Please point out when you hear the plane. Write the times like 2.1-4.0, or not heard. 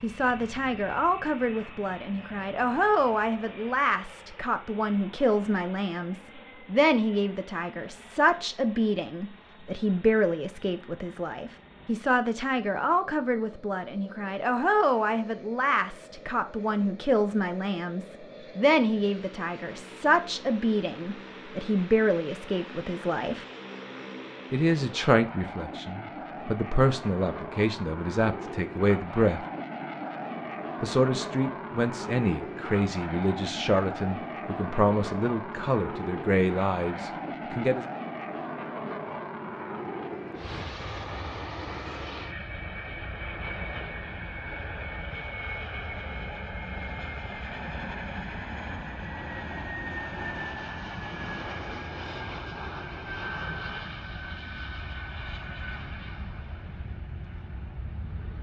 0.0-58.3.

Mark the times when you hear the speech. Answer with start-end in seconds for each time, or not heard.
0.0-23.4, 24.5-29.4, 30.8-37.9.